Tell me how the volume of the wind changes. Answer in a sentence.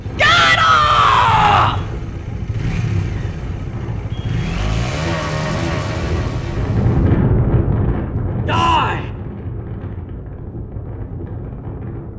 The loudness of the wind goes up, then down.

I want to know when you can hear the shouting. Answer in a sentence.
You can hear the shouting from 0.1 to 1.8 s and from 8.4 to 9.1 s.